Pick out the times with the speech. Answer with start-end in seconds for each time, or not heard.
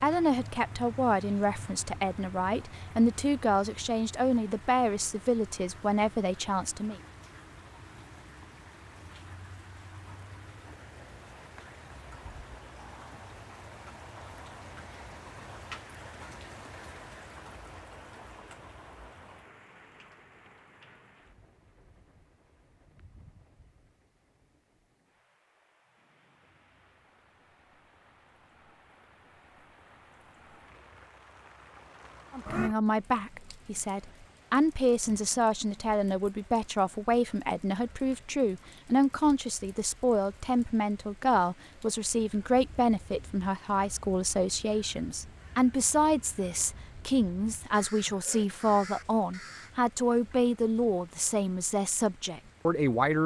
0.0-7.0, 32.3-53.2.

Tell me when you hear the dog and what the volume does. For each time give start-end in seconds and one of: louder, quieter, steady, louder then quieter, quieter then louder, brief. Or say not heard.
not heard.